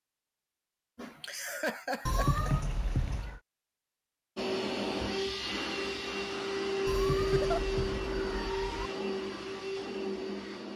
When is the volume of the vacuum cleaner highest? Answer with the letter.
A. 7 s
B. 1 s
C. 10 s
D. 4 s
A.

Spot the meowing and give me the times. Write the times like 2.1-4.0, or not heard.
2.0-3.4, 6.8-8.9.